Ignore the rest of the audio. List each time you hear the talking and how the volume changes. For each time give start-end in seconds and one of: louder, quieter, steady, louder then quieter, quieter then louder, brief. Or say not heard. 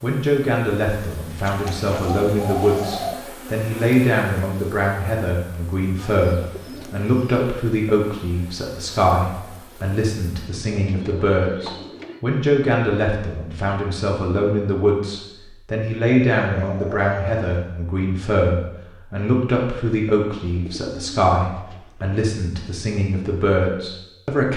0.0-24.5 steady.